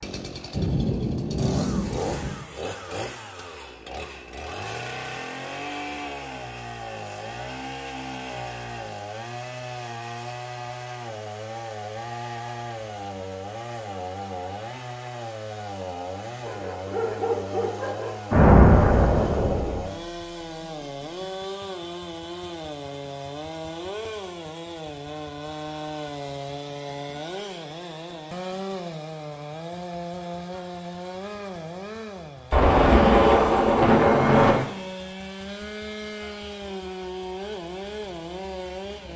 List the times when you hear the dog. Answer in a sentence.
The dog can be heard from 16.4 to 18.2 s.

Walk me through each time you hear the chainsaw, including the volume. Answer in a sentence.
The chainsaw can be heard from 0.0 to 39.1 s, at a steady volume.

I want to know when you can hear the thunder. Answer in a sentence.
You can hear the thunder from 0.5 to 2.3 s, from 18.3 to 19.8 s and from 32.5 to 34.5 s.